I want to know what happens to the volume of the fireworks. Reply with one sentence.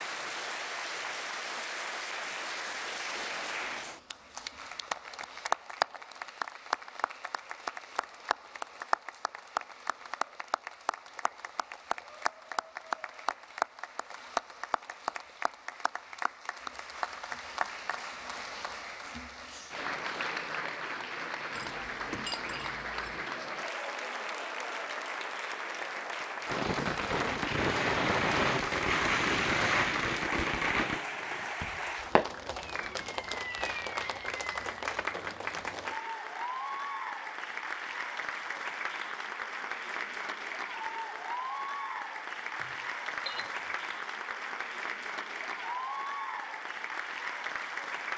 The volume of the fireworks goes down.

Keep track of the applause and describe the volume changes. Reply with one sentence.
The loudness of the applause stays about the same.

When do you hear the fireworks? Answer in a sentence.
The fireworks can be heard from 26.4 to 35.2 s.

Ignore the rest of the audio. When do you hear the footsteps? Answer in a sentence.
You can't hear the footsteps here.